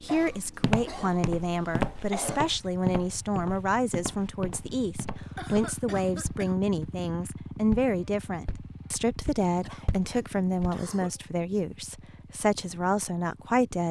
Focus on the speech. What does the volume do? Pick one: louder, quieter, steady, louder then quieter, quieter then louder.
steady.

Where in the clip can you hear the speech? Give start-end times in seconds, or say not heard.
0.0-13.8.